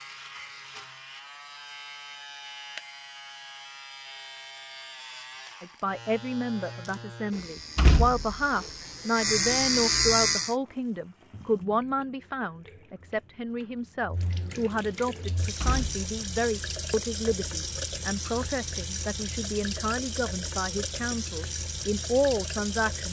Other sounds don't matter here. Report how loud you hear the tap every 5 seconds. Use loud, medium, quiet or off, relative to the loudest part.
off, off, quiet, loud, loud.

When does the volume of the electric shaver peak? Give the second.
10 s.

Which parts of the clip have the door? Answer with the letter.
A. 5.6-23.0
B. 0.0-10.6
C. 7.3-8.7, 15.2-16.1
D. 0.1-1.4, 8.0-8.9
C.